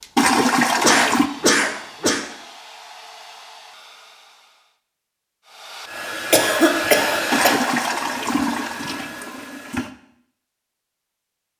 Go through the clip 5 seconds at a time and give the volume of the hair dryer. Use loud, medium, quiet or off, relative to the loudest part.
medium, loud, off.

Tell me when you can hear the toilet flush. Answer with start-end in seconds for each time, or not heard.
0.1-1.3, 7.3-9.9.